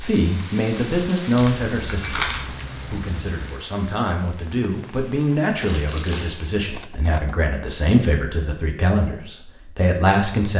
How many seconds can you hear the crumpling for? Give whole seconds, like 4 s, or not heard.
2 s.